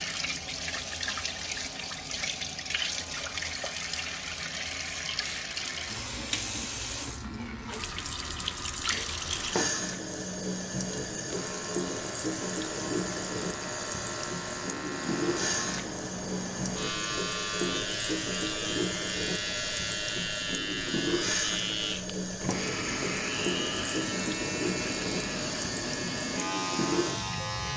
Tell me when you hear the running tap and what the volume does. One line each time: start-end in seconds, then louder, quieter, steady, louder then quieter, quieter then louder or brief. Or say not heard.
0.0-27.7 steady.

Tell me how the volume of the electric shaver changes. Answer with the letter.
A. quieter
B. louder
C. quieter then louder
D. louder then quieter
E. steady
B.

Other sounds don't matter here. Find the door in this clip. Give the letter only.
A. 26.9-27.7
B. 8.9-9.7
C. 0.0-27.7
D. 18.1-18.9
B.